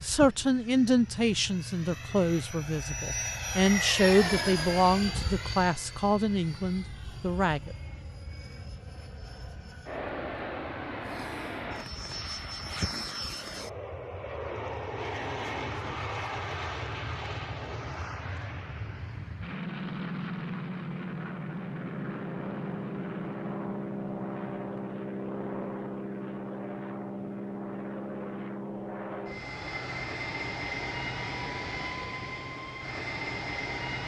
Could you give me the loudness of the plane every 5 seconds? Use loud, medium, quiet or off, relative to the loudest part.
loud, medium, loud, loud, loud, loud, loud.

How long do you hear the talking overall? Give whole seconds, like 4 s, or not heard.
8 s.